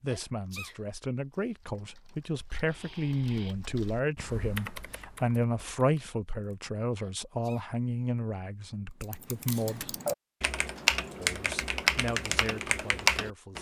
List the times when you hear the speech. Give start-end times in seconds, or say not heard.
0.0-10.0, 11.2-13.5.